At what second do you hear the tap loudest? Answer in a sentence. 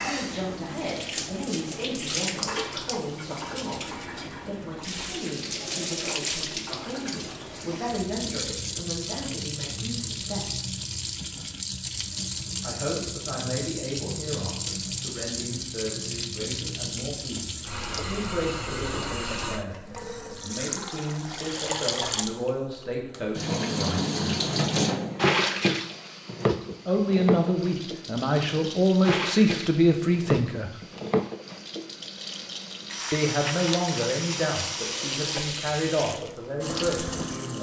The loudest moment of the tap is at 25 seconds.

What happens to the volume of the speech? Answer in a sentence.
The volume of the speech goes up.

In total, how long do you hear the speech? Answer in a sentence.
You can hear the speech for 31 seconds altogether.